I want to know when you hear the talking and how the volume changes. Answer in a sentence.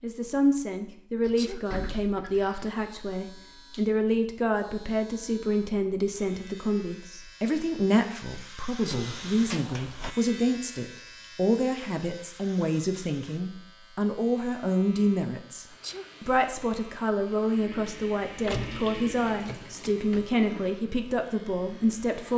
The talking can be heard from 0.0 to 22.3 s, at a steady volume.